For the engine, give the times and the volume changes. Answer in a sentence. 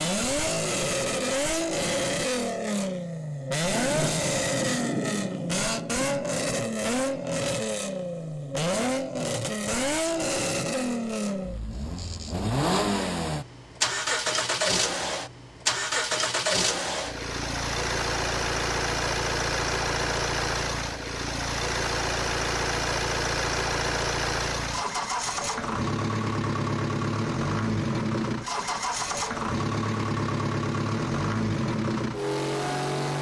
The engine can be heard from 0.0 to 33.1 s, at a steady volume.